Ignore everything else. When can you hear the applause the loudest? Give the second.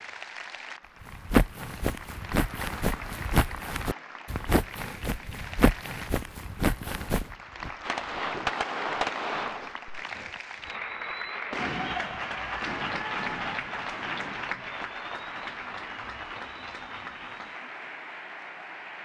13 s.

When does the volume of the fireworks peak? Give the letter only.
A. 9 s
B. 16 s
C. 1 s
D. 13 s
A.